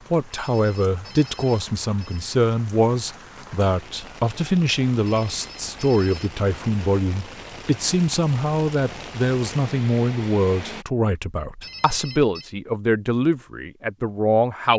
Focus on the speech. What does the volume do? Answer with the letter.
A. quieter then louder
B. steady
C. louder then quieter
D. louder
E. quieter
B.